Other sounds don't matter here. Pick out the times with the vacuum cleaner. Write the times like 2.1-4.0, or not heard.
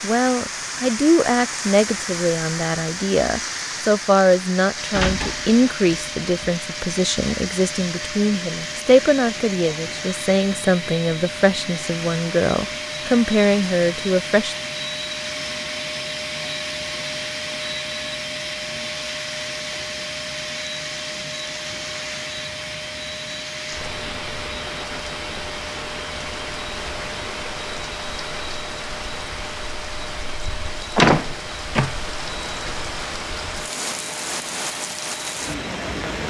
4.8-36.2.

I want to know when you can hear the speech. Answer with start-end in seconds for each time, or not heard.
0.0-14.6.